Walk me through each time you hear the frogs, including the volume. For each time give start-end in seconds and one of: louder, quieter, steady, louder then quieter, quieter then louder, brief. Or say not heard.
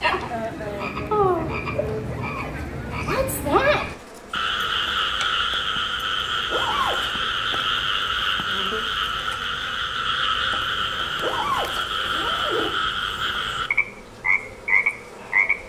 0.0-15.6 steady.